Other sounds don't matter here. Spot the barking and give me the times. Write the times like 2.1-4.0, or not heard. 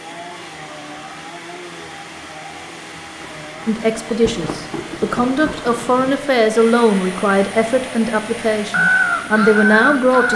not heard.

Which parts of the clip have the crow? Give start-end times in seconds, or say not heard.
8.6-10.3.